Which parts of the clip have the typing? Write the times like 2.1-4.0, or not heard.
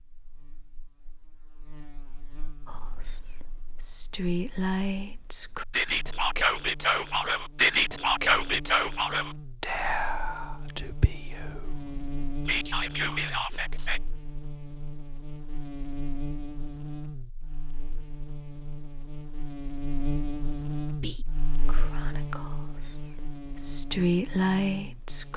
not heard.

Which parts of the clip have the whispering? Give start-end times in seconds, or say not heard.
2.6-14.0, 21.0-25.3.